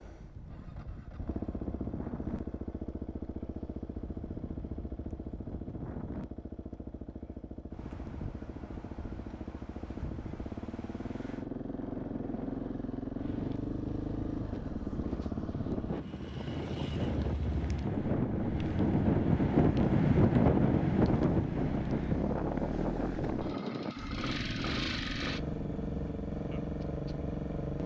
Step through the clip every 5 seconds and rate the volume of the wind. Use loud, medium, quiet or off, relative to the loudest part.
quiet, quiet, quiet, loud, loud, quiet.